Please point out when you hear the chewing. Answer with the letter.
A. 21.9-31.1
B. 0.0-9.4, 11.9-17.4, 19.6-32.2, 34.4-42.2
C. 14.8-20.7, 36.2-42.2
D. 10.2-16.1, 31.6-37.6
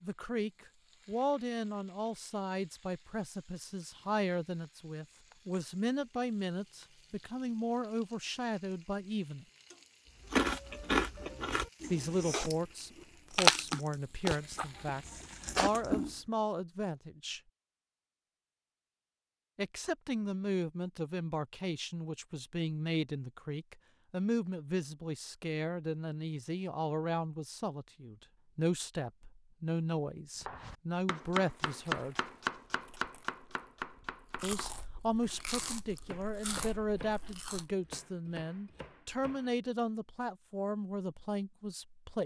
D.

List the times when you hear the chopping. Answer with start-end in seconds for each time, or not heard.
30.4-39.5.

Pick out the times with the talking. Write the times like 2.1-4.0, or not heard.
0.0-9.4, 11.9-17.4, 19.6-32.2, 34.4-42.2.